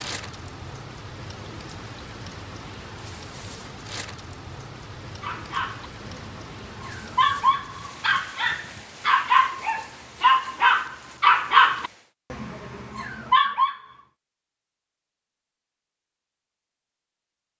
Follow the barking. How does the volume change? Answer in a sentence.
The volume of the barking goes up, then down.